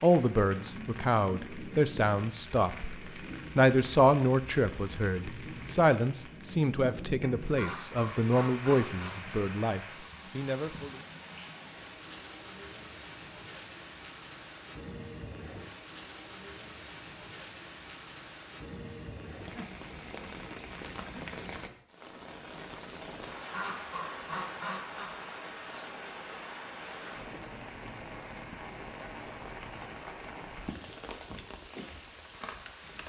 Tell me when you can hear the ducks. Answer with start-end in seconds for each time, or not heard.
7.5-9.2, 23.5-25.1.